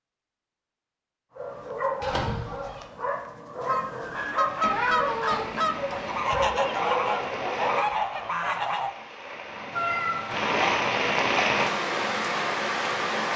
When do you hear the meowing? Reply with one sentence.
You can hear the meowing from 2.0 to 2.8 s, from 4.6 to 6.5 s and from 9.7 to 10.4 s.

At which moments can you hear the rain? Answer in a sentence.
The rain can be heard from 4.2 to 13.3 s.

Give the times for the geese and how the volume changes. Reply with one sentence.
You can hear the geese from 3.6 to 8.9 s, at a steady volume.